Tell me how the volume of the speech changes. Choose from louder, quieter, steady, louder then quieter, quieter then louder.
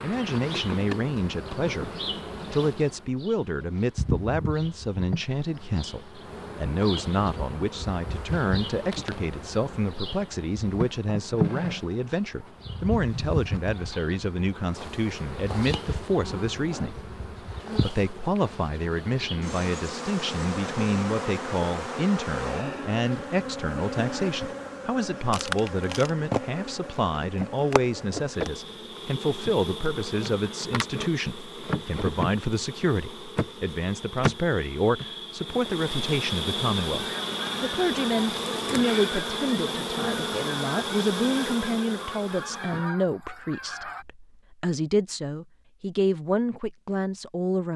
steady.